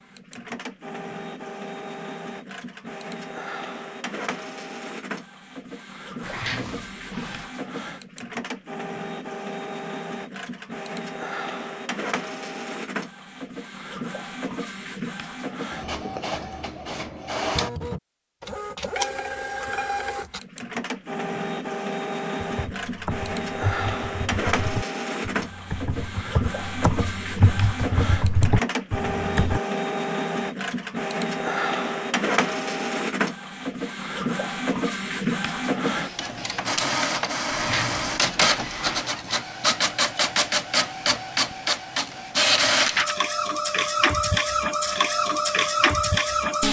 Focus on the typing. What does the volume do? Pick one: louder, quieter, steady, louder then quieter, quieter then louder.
louder.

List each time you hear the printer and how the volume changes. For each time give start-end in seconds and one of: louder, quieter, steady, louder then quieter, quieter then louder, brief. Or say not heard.
0.0-46.6 louder.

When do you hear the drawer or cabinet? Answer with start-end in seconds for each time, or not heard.
6.2-7.5, 37.5-39.1.